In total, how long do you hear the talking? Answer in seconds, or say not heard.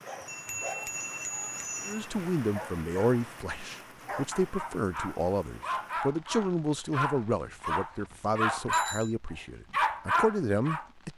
9 s.